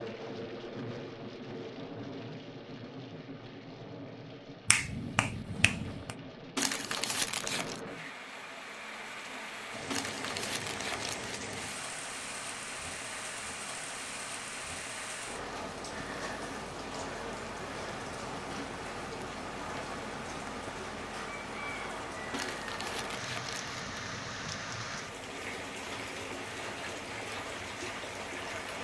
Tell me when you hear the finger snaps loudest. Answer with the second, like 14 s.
5 s.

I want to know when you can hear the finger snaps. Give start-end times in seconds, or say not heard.
4.7-6.2.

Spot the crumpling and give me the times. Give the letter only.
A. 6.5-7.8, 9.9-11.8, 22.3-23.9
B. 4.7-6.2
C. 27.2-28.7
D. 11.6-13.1
A.